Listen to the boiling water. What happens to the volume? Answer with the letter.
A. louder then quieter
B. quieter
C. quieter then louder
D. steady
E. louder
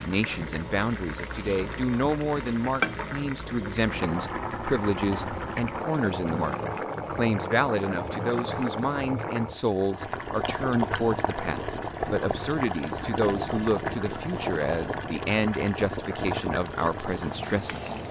D.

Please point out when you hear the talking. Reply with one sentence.
The talking can be heard from 0.0 to 17.9 s.